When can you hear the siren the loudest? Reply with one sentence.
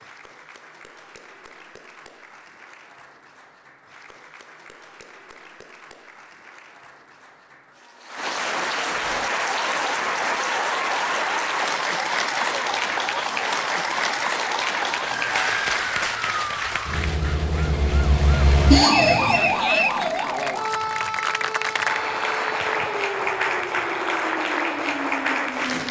The volume of the siren peaks at 19 seconds.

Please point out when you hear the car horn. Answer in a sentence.
You can't hear the car horn here.